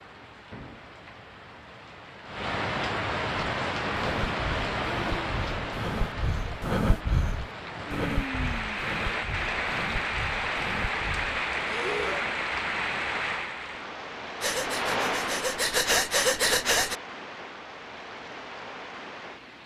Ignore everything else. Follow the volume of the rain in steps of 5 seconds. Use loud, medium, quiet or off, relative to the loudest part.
loud, loud, loud, medium.